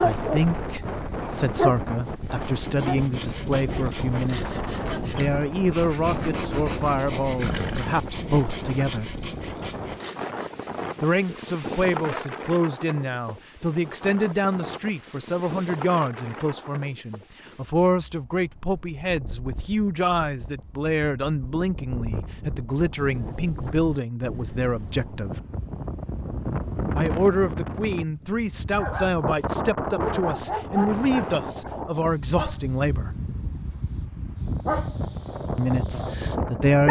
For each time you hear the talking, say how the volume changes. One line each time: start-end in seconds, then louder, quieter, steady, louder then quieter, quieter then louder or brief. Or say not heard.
0.0-9.1 steady
11.0-25.4 steady
26.9-33.1 steady
35.5-36.8 brief.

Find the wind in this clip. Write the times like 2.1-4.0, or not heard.
0.0-36.8.